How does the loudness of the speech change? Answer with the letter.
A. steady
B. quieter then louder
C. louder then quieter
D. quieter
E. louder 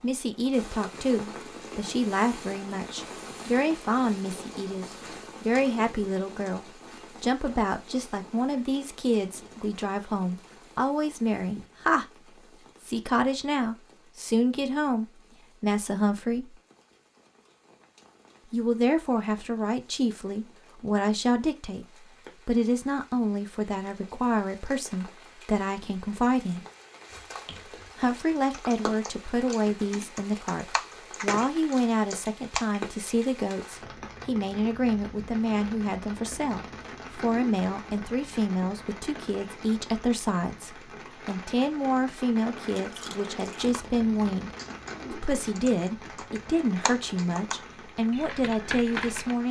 A.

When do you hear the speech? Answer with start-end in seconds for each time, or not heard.
0.0-12.1, 12.8-16.6, 18.5-26.6, 27.9-49.4.